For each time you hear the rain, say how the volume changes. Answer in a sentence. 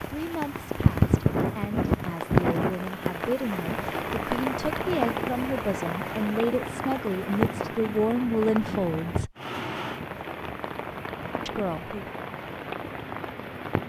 The rain can be heard from 0.0 to 13.8 s, getting quieter.